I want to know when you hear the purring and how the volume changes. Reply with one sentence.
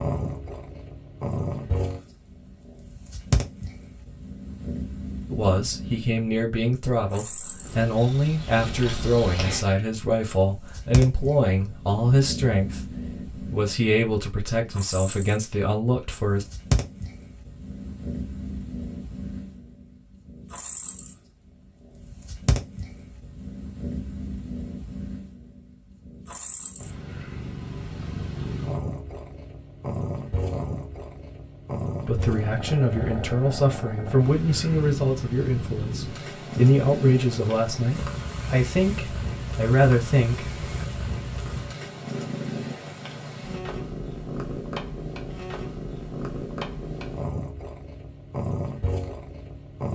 You can hear the purring from 0.0 to 49.9 s, at a steady volume.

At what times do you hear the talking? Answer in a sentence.
The talking can be heard from 5.3 to 16.4 s and from 32.0 to 40.9 s.